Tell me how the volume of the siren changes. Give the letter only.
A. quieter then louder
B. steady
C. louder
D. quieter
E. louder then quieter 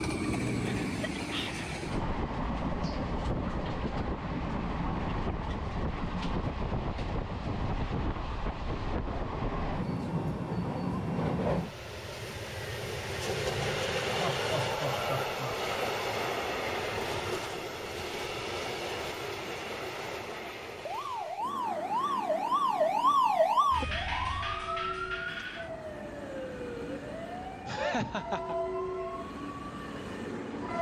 D.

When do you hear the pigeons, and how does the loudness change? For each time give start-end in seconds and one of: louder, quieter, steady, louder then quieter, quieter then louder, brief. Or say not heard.
not heard.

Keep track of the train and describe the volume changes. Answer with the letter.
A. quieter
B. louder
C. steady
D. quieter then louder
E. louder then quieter
A.